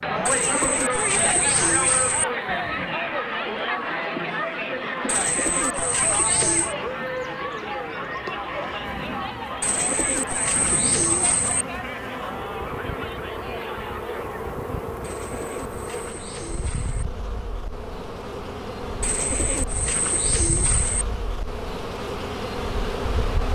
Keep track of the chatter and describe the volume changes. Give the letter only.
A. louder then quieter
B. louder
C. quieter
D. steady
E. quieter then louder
C.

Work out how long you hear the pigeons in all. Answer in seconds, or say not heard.
10 s.